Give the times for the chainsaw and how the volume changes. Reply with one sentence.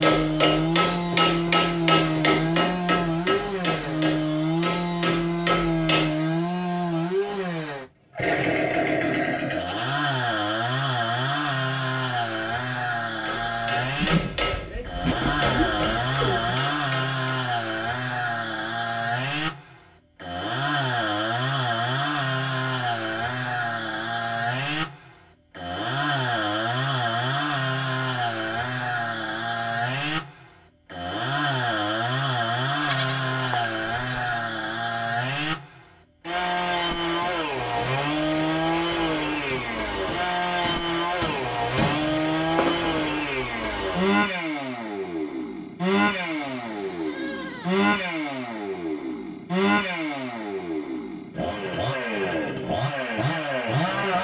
The chainsaw can be heard from 0.0 to 54.1 s, at a steady volume.